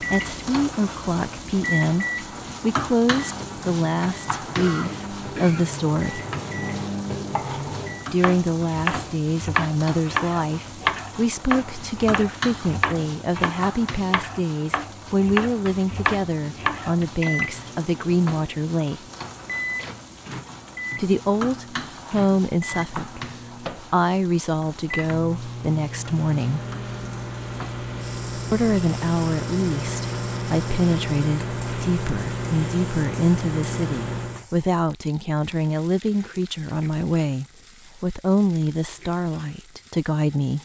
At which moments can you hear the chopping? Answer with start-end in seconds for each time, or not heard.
7.2-17.1.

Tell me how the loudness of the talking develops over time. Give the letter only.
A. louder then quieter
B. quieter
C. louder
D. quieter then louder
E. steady
E.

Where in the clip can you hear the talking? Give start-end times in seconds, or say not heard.
0.0-6.2, 8.1-19.0, 20.9-26.6, 28.5-40.6.